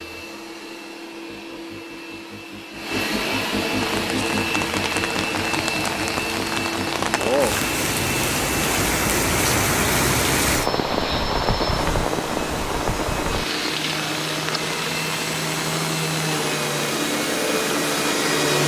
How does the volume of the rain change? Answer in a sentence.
The volume of the rain goes up, then down.